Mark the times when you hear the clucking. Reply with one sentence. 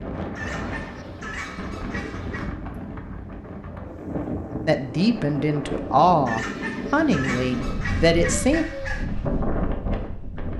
You can hear the clucking from 0.3 to 2.5 s and from 6.2 to 9.1 s.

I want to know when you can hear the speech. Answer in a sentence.
You can hear the speech from 4.7 to 8.7 s.